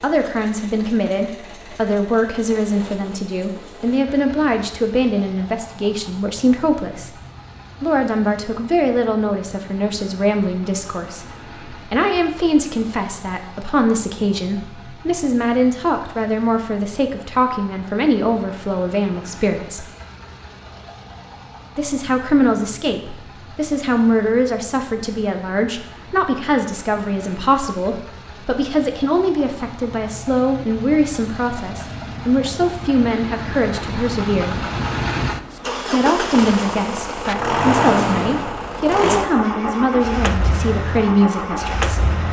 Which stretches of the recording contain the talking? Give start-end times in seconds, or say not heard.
0.0-7.1, 7.8-19.9, 21.8-34.6, 35.9-42.1.